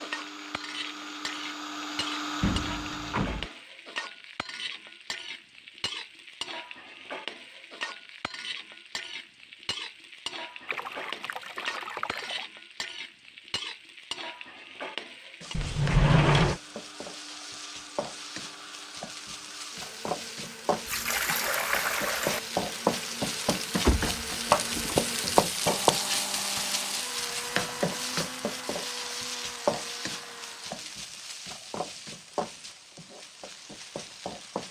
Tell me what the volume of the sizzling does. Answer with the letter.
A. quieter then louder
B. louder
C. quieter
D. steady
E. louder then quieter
E.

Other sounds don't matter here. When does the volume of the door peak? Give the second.
16 s.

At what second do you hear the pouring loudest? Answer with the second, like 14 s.
22 s.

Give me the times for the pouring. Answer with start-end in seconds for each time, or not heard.
10.7-12.4, 20.9-22.4.